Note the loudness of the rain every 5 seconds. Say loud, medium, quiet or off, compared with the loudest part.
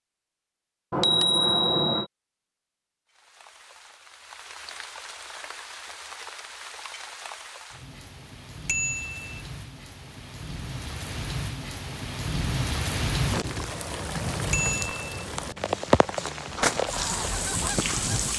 quiet, quiet, loud, loud.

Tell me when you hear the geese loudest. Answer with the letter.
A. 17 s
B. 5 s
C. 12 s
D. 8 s
A.